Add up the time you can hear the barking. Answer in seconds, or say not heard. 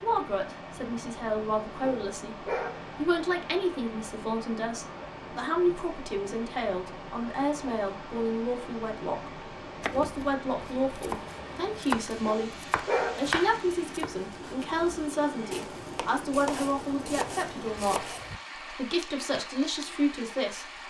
2 s.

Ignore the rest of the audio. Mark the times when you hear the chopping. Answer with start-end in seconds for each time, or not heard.
9.8-18.4.